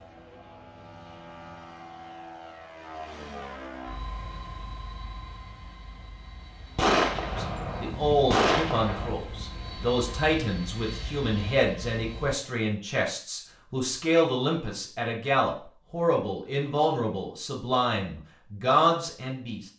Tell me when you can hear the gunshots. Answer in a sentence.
The gunshots can be heard from 6.8 to 9.2 s.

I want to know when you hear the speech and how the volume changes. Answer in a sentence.
You can hear the speech from 7.2 to 19.7 s, at a steady volume.